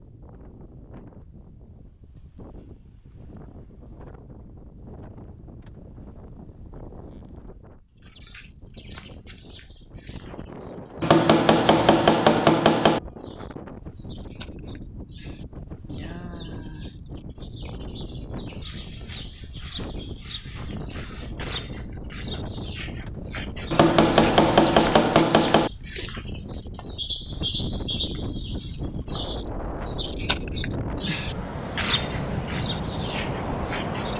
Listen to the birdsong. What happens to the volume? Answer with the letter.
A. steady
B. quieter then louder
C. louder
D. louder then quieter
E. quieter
C.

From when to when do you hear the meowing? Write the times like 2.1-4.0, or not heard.
not heard.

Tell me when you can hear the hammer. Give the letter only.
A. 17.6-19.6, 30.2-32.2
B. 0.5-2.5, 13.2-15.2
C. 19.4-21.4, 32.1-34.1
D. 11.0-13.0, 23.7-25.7
D.